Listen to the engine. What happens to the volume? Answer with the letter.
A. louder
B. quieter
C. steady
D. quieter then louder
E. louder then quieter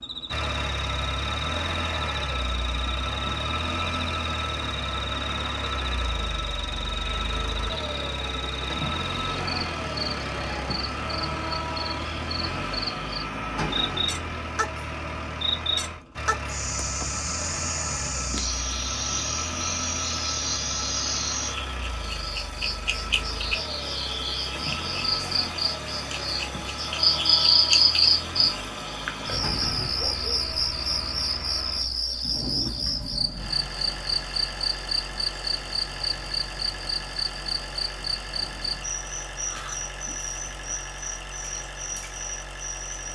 B.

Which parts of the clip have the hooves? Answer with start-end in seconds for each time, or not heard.
not heard.